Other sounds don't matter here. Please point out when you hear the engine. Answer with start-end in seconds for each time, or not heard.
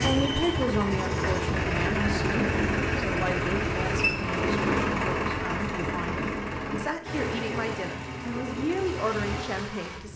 0.0-10.1.